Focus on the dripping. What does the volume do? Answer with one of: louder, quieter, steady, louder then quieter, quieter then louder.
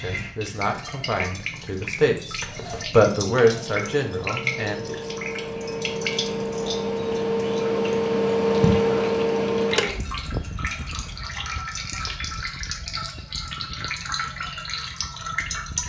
steady.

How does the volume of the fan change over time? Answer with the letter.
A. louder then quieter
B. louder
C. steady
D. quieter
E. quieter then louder
A.